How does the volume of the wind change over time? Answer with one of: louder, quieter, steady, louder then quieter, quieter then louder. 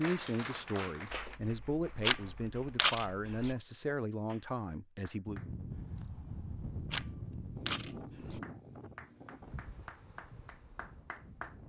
quieter.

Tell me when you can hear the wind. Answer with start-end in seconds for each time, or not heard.
5.2-11.6.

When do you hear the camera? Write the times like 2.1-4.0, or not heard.
1.1-3.5, 6.0-8.4.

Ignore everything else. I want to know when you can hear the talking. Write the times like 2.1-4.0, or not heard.
0.0-5.4.